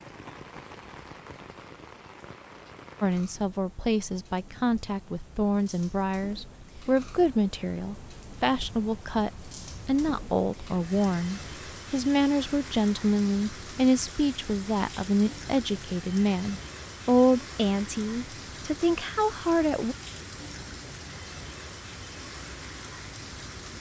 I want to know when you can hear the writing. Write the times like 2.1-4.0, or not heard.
not heard.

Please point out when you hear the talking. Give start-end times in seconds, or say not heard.
3.0-19.9.